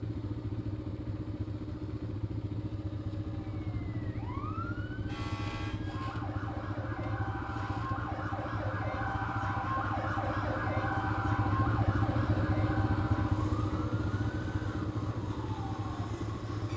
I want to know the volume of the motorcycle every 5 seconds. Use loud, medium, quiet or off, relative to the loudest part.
medium, medium, loud, medium.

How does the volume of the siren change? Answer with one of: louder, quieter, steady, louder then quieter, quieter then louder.
louder then quieter.